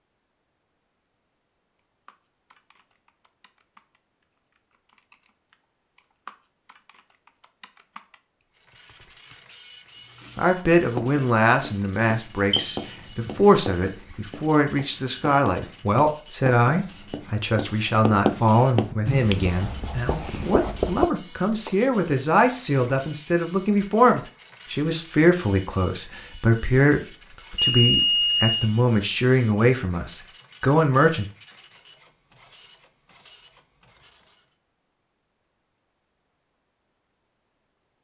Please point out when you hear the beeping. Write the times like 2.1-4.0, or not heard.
12.5-13.3, 27.6-28.7.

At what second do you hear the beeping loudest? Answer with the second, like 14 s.
28 s.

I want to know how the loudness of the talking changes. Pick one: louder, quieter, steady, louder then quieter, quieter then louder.
steady.